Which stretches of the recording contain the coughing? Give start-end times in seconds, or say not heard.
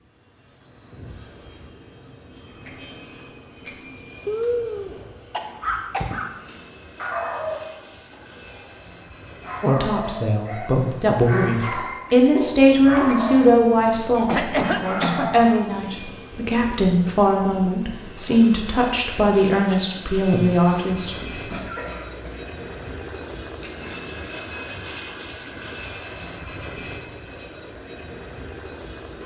4.2-6.2, 14.2-15.3, 21.3-22.4.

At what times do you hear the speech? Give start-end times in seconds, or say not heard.
9.6-21.5.